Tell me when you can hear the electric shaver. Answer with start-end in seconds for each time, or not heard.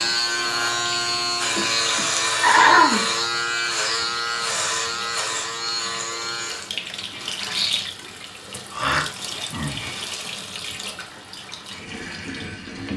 0.0-6.7.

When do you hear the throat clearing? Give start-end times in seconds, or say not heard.
1.6-3.1, 8.7-9.8.